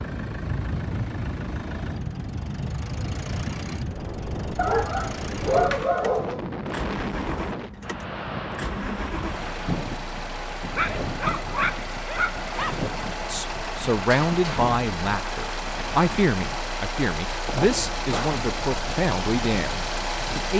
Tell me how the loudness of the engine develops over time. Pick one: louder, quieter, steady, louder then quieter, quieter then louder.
louder.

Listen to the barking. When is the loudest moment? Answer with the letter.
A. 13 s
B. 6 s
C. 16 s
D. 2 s
B.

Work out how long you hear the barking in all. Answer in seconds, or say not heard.
4 s.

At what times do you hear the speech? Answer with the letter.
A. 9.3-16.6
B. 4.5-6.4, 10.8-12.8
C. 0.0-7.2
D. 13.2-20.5
D.